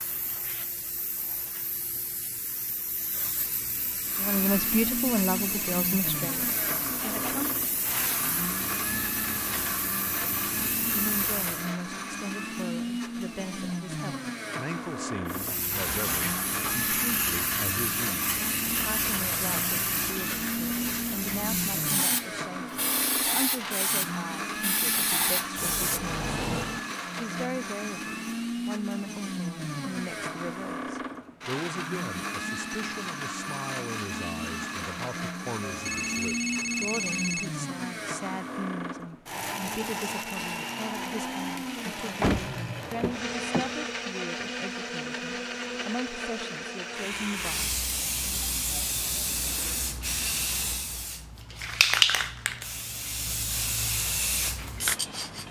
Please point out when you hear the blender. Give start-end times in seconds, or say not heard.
4.0-47.8.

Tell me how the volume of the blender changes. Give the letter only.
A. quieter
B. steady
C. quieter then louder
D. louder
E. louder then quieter
B.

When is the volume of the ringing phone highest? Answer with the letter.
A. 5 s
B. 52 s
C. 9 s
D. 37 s
D.